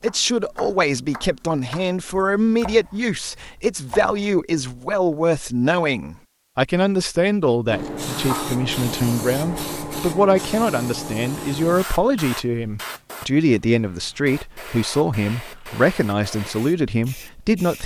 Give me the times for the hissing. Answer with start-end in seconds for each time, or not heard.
7.7-17.8.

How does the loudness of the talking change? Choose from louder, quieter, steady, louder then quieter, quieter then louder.
steady.